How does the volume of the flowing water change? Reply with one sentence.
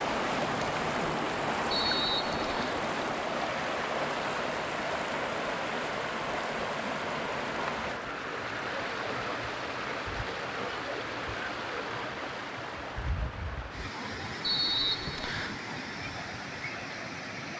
The volume of the flowing water goes down.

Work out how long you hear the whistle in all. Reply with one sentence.
The whistle can be heard for 2 seconds in total.